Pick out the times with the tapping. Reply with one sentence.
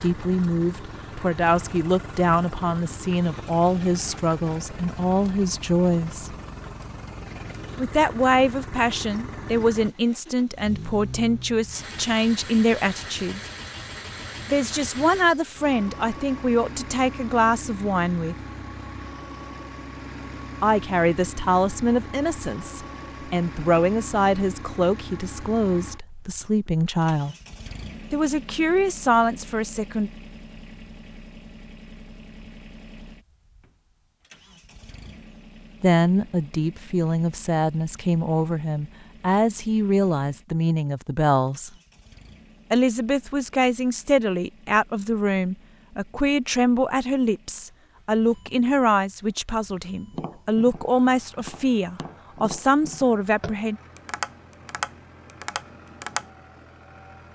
You can hear the tapping from 50.1 to 56.3 s.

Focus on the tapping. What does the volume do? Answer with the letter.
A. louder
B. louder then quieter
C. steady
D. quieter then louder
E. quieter
A.